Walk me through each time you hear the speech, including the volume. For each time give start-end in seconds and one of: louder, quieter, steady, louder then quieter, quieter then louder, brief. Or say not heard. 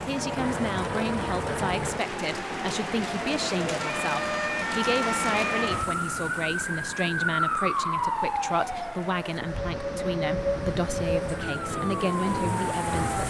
0.1-13.2 steady.